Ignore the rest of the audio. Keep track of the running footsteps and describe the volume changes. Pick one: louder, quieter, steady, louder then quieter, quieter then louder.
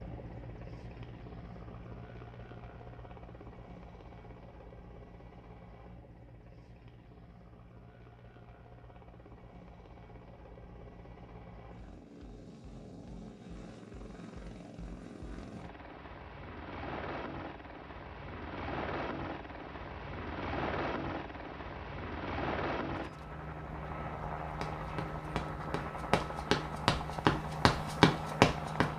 louder.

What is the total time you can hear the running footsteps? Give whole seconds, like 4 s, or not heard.
4 s.